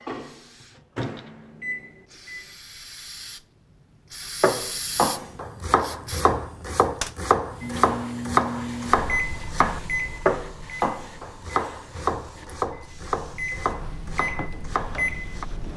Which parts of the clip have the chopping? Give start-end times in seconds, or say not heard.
4.4-15.4.